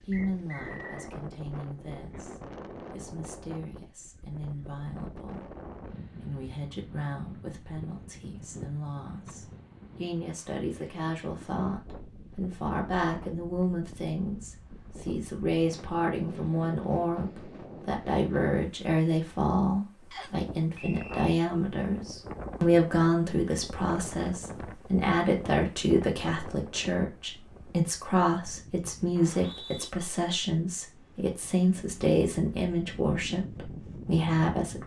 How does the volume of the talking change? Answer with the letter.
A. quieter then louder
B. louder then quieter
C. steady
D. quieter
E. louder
E.